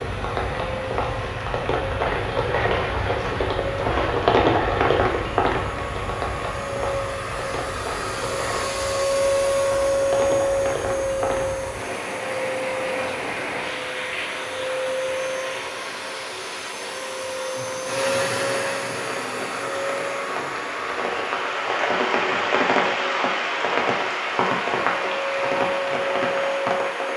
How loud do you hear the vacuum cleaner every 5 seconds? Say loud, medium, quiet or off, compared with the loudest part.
medium, loud, loud, loud, medium, loud.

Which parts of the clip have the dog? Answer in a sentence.
You can't hear the dog here.